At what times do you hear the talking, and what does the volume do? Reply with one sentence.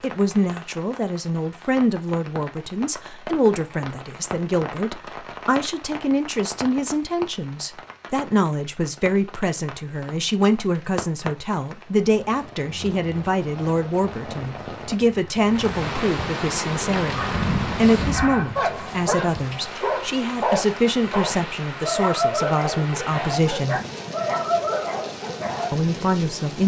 You can hear the talking from 0.0 to 23.8 s, at a steady volume; and briefly from 25.7 to 26.6 s.